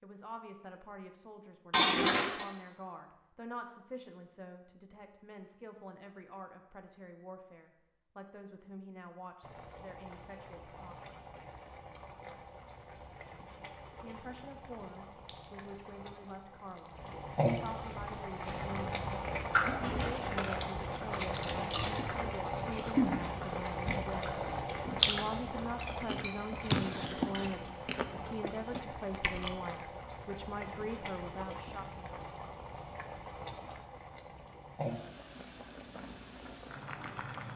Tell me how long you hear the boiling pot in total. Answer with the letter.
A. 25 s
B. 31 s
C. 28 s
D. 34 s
C.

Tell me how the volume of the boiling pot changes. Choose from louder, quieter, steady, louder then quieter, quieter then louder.
louder then quieter.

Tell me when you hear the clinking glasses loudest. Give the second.
2 s.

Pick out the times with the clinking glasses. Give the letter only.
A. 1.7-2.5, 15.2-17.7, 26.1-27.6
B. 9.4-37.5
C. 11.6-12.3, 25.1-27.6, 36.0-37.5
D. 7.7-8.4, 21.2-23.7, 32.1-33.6
A.